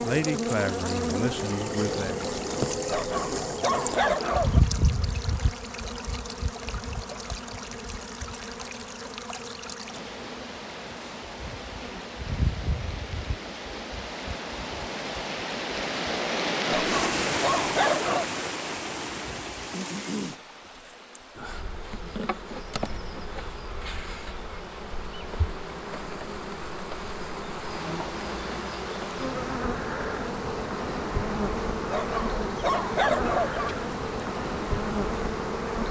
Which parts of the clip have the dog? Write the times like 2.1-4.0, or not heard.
2.9-4.6, 16.7-18.2, 31.9-33.8.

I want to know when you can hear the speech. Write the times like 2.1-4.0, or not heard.
0.0-2.2.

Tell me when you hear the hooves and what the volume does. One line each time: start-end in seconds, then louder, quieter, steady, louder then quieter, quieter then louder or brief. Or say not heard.
not heard.